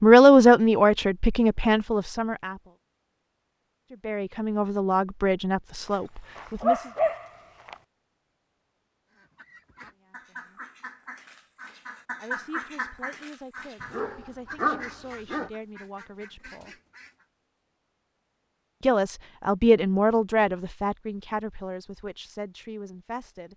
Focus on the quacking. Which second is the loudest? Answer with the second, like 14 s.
12 s.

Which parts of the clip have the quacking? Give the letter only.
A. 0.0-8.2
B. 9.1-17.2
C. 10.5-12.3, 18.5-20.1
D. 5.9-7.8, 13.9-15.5
B.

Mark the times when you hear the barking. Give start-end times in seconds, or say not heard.
5.9-7.8, 13.9-15.5.